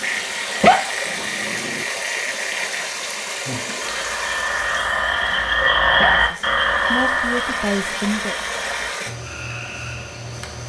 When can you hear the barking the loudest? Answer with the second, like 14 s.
1 s.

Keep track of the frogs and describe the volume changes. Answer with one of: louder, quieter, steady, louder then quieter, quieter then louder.
louder then quieter.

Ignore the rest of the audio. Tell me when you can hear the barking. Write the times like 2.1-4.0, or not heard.
0.6-1.9, 6.0-7.2.